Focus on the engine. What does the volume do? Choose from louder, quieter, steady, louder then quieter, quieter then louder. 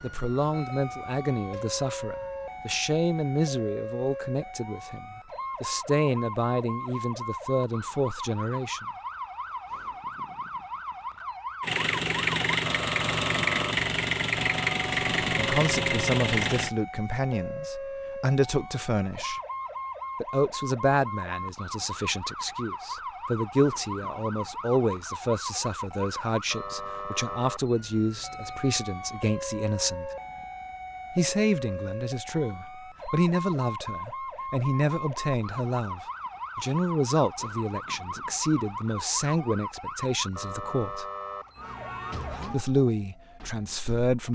steady.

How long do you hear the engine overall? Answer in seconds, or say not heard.
5 s.